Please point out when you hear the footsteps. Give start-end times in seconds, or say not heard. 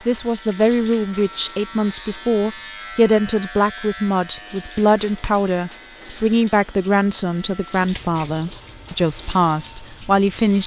not heard.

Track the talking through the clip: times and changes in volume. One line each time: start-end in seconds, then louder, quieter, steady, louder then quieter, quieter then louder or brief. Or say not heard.
0.1-10.6 steady.